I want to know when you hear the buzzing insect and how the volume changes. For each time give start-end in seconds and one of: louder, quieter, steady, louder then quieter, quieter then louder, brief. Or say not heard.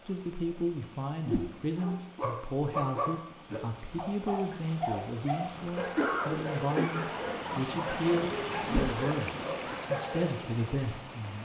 not heard.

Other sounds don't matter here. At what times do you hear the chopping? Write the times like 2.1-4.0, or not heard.
not heard.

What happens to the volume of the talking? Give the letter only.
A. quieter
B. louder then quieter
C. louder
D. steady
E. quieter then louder
D.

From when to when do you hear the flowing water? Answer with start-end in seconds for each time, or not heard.
0.0-11.4.